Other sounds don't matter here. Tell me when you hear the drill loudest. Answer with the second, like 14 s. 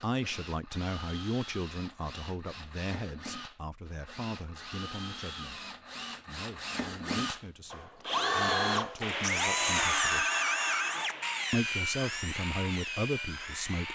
10 s.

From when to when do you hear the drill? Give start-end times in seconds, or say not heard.
0.0-13.8.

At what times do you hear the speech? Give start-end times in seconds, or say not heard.
0.0-10.3, 11.5-13.8.